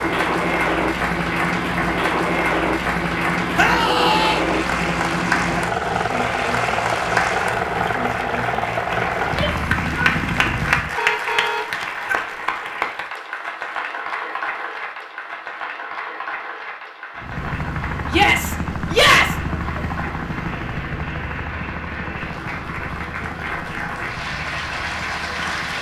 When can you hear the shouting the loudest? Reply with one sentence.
The volume of the shouting peaks at 19 seconds.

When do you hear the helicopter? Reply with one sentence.
The helicopter can be heard from 0.0 to 10.9 s and from 17.1 to 25.7 s.